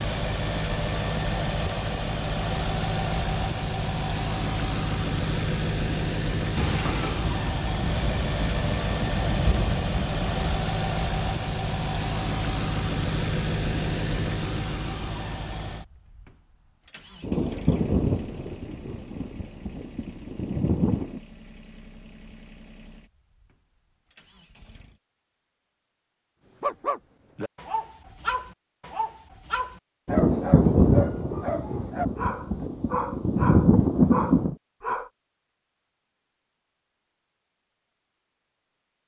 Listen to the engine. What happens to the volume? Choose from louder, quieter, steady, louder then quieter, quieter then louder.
quieter.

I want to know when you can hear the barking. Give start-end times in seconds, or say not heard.
26.6-35.1.